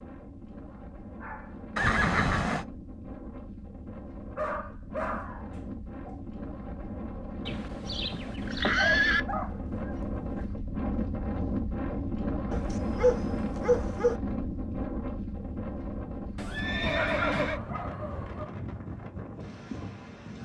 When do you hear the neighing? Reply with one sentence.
The neighing can be heard from 1.8 to 2.6 s, from 7.5 to 9.2 s and from 16.4 to 17.6 s.